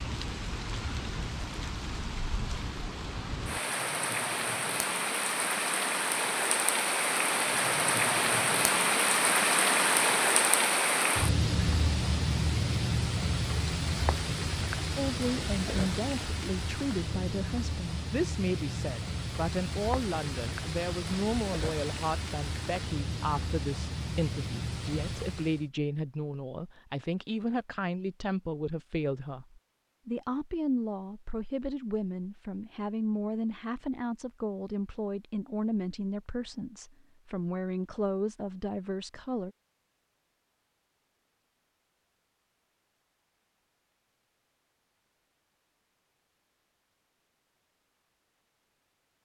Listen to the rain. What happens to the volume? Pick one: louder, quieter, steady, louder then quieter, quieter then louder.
louder then quieter.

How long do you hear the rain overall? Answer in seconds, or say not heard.
26 s.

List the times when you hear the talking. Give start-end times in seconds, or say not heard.
14.9-39.5.